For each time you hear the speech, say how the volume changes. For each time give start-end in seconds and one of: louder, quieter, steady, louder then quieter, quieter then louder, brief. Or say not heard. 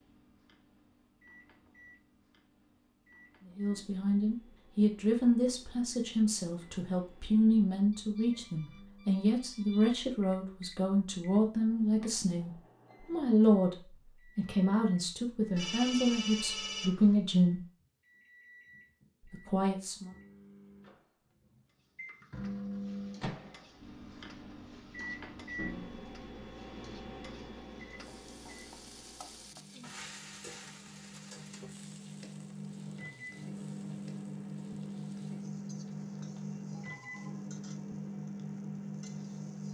3.5-17.6 steady
19.2-20.1 brief.